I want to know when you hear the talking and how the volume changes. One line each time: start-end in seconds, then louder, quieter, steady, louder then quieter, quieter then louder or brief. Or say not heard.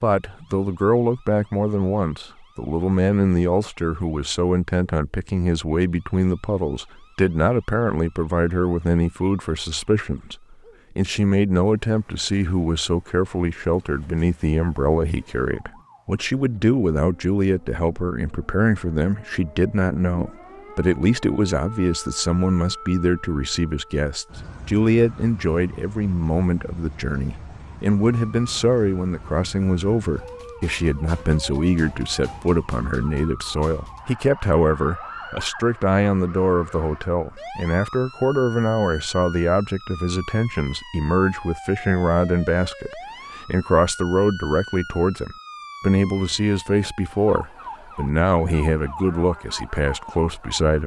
0.0-50.8 steady.